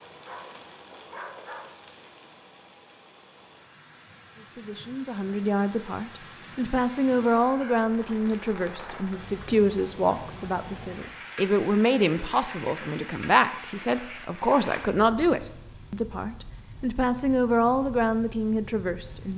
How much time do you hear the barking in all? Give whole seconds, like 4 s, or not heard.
2 s.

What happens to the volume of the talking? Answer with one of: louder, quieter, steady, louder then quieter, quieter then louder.
steady.